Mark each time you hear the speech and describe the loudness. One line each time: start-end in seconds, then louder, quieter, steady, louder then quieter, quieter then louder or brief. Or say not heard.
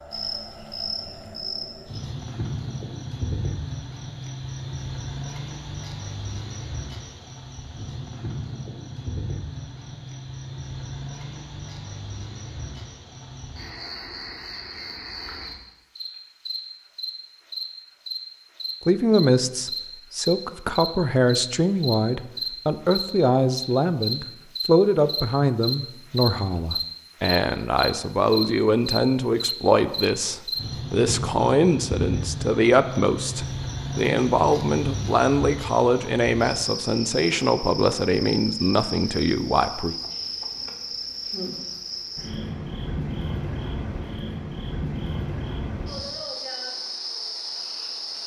18.9-40.0 steady.